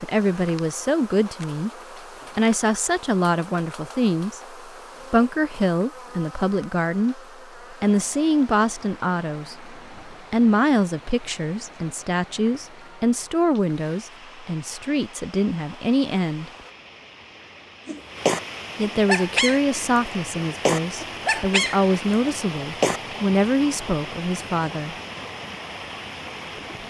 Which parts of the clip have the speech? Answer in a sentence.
You can hear the speech from 0.0 to 1.7 s, from 2.4 to 16.5 s and from 18.8 to 24.9 s.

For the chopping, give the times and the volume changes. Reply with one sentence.
You can't hear the chopping here.